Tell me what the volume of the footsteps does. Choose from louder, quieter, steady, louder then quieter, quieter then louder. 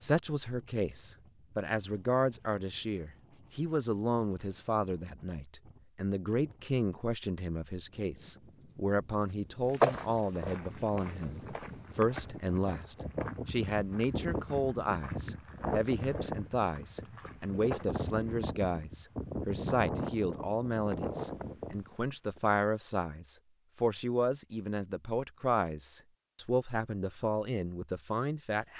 quieter.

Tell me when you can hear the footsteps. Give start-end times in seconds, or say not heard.
9.7-18.5.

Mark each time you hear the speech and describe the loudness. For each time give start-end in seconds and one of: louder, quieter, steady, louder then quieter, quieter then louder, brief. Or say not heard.
0.0-28.7 steady.